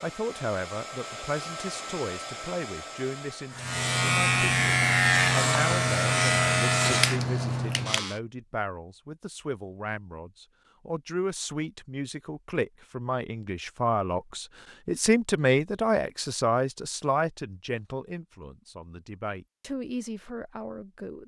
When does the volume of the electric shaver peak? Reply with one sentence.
The volume of the electric shaver peaks at 5 seconds.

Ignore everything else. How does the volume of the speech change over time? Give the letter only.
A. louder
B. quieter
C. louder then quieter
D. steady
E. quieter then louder
C.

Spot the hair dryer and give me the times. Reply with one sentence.
The hair dryer can be heard from 0.0 to 3.7 s.